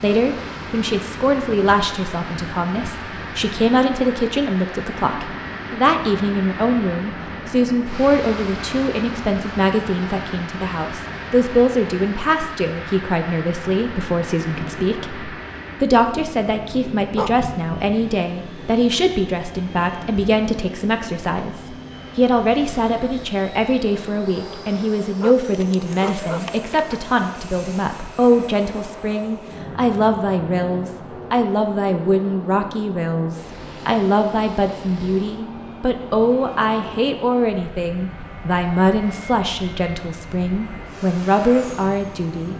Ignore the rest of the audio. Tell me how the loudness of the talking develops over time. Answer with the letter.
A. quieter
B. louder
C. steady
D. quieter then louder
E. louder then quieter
C.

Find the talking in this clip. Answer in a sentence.
You can hear the talking from 0.0 to 42.5 s.